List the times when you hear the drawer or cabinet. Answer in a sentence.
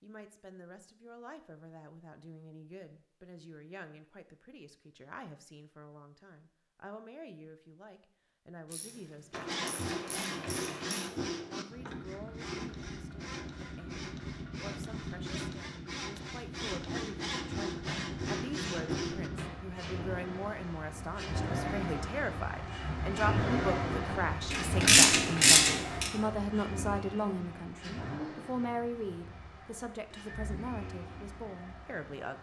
You can't hear the drawer or cabinet here.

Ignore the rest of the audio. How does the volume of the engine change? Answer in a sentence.
The volume of the engine goes up, then down.